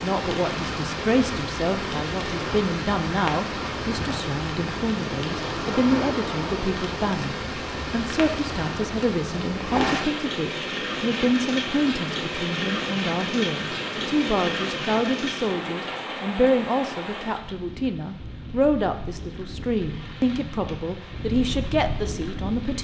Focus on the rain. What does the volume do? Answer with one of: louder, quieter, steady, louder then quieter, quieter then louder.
quieter.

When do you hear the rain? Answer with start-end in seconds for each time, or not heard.
0.0-22.7.